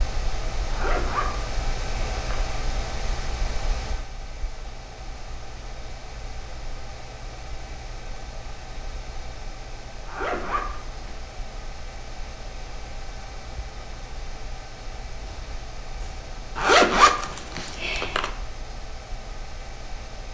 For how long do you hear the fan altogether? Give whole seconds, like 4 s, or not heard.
20 s.